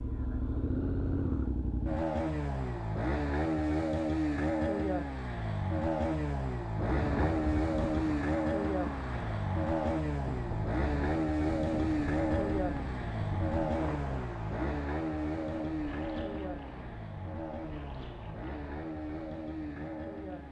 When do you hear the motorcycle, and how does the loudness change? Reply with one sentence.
You can hear the motorcycle from 0.0 to 20.4 s, getting quieter.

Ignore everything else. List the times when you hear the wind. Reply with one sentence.
The wind can be heard from 6.8 to 20.4 s.